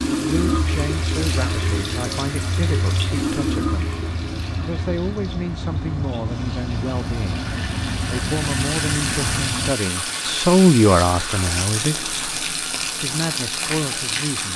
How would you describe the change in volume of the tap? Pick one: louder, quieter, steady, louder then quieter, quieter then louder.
quieter then louder.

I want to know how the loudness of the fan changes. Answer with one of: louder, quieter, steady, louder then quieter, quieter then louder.
louder.